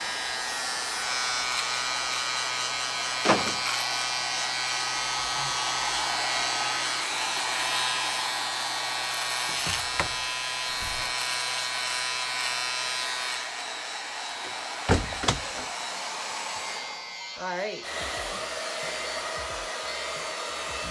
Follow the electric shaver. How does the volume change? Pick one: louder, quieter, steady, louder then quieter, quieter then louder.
quieter.